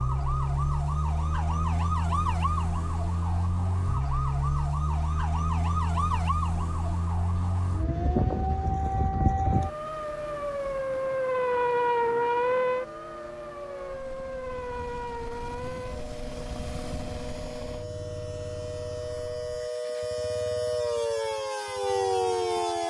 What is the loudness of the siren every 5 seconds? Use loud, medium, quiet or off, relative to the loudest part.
loud, loud, loud, medium, loud.